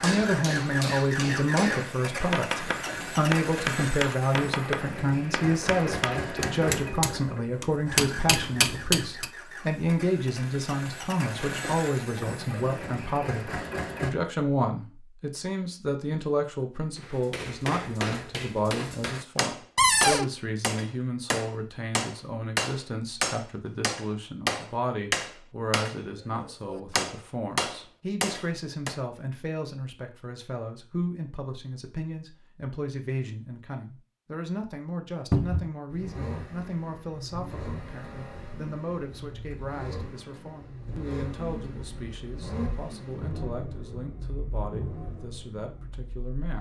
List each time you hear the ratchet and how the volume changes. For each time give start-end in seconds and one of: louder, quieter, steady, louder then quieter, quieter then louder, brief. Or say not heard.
not heard.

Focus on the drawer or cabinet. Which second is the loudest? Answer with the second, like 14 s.
20 s.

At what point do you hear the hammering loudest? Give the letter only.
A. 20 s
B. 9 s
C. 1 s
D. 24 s
B.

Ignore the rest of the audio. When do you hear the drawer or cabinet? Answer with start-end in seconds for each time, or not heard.
19.8-20.3, 35.3-35.7.